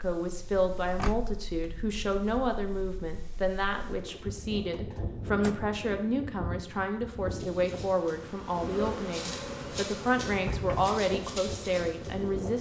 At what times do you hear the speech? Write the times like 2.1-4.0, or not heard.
0.0-12.5.